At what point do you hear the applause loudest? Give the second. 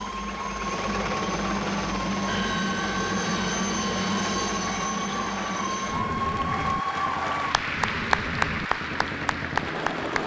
8 s.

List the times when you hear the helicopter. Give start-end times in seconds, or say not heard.
0.0-10.2.